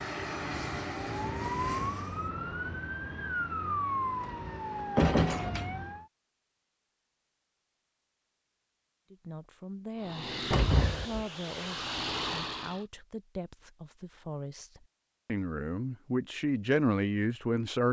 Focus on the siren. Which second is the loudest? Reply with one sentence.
The volume of the siren peaks at 4 seconds.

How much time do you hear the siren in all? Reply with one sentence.
The siren can be heard for 6 seconds in total.